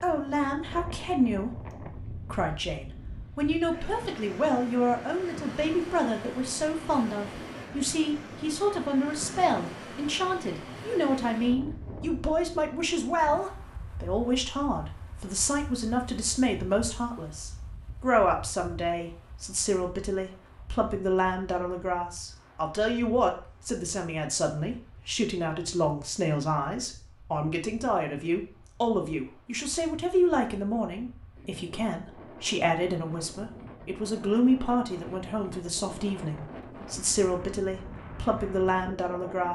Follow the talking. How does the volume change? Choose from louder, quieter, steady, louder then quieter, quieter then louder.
steady.